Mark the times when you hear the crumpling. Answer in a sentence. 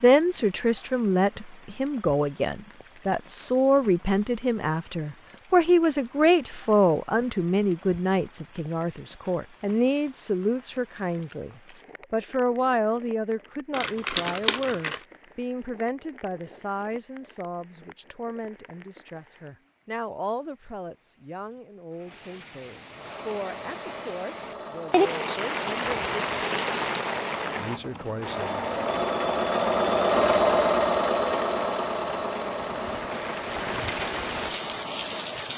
The crumpling can be heard from 13.7 to 15.0 s.